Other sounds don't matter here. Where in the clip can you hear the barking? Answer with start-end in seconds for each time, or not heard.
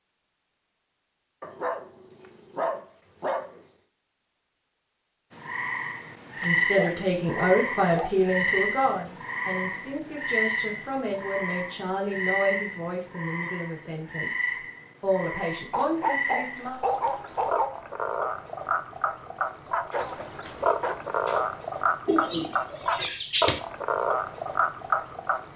1.4-3.6, 6.8-8.1, 15.7-17.7, 19.9-21.4.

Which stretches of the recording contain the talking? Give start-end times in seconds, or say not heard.
6.4-16.8.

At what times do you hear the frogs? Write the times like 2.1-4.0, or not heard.
5.3-25.5.